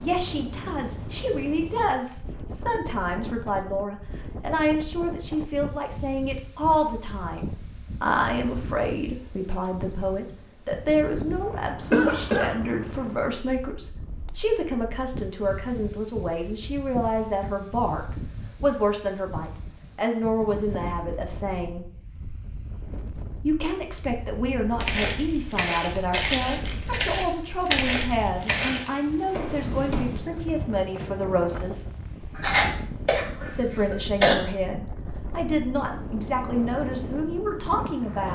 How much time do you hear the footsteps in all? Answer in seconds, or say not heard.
5 s.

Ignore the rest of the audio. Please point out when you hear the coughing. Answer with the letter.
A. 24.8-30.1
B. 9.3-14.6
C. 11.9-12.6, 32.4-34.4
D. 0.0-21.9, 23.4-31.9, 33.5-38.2
C.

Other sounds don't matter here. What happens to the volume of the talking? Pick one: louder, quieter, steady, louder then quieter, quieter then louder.
steady.